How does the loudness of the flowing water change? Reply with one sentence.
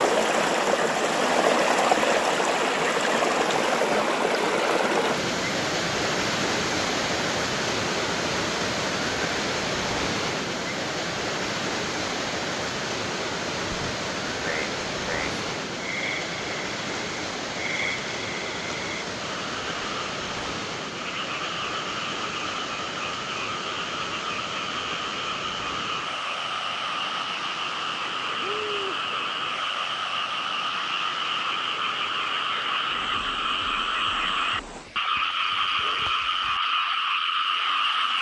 The volume of the flowing water goes down.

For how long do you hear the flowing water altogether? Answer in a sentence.
You can hear the flowing water for 38 seconds altogether.